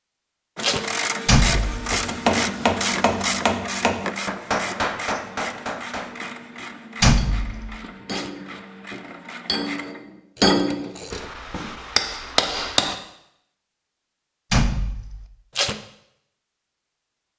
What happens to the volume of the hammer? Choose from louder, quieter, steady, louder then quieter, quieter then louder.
quieter then louder.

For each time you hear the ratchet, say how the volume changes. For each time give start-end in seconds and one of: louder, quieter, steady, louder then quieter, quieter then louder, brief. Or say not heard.
0.6-11.3 quieter.